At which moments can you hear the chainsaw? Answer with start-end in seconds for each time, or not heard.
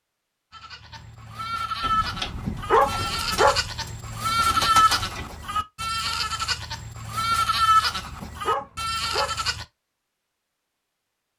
not heard.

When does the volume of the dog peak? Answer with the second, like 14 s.
3 s.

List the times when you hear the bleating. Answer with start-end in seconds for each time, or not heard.
0.5-9.7.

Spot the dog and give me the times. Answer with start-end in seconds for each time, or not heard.
1.9-3.6, 7.7-9.3.